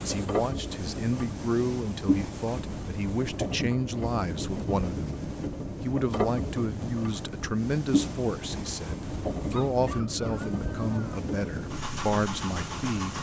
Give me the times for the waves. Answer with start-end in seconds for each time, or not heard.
0.0-13.1.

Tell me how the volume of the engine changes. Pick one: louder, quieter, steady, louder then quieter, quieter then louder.
steady.